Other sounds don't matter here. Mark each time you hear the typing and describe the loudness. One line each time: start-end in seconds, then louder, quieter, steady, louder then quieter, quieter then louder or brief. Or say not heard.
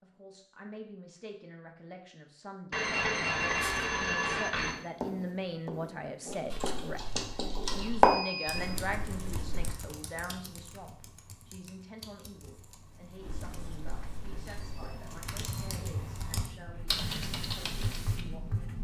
6.2-18.2 quieter then louder.